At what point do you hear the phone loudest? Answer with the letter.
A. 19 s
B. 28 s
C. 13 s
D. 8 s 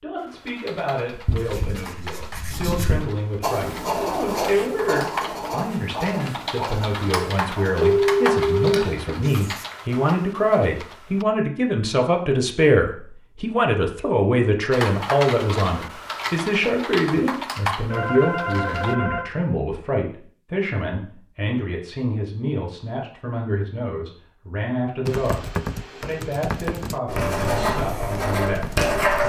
D.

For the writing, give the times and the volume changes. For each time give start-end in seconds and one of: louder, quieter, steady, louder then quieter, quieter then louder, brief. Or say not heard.
1.1-9.7 louder then quieter
27.1-29.2 brief.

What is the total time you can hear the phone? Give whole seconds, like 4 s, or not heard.
3 s.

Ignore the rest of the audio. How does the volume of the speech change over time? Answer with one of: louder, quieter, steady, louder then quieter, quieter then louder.
louder then quieter.